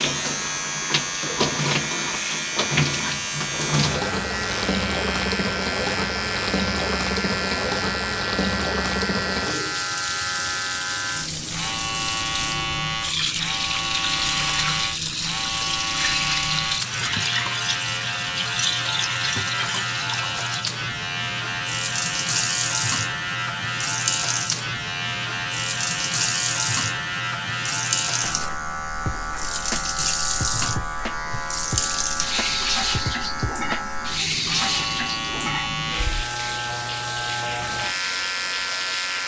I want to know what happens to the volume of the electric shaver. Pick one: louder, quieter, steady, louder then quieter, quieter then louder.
steady.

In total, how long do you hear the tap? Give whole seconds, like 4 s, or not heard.
39 s.